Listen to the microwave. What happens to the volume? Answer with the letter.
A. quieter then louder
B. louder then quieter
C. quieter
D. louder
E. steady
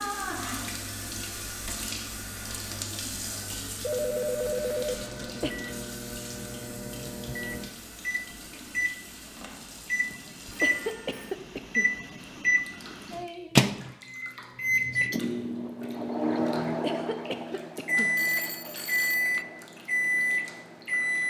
D.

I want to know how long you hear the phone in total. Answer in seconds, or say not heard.
4 s.